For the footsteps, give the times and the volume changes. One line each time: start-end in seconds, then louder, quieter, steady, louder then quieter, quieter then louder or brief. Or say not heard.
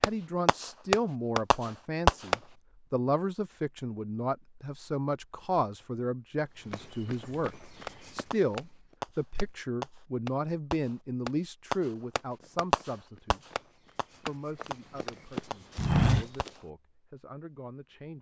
6.7-8.9 brief
12.4-16.5 louder.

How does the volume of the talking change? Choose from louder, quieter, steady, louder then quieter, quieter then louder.
quieter.